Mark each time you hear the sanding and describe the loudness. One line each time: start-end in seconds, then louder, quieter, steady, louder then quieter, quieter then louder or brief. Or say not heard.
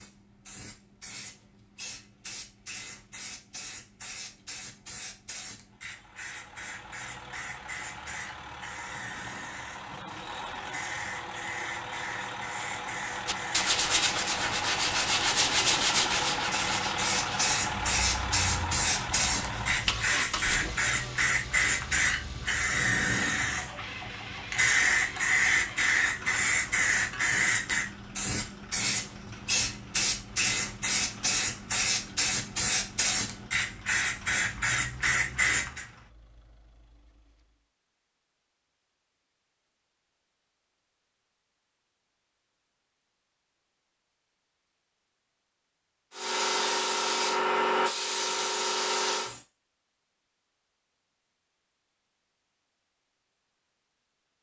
13.2-20.1 quieter.